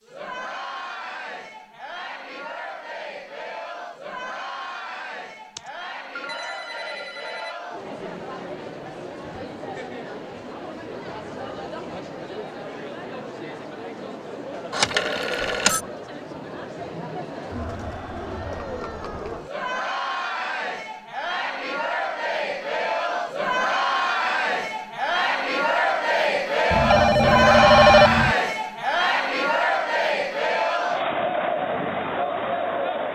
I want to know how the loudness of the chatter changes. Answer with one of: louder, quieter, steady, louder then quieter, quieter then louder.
louder.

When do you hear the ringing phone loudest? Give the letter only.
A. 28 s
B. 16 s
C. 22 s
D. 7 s
A.